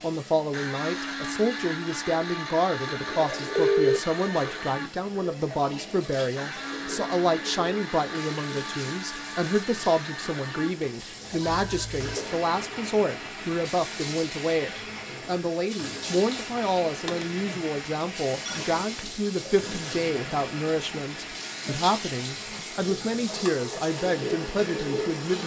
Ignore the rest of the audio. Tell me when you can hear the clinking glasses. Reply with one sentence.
The clinking glasses can't be heard in this clip.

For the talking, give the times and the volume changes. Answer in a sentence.
The talking can be heard from 0.0 to 25.4 s, at a steady volume.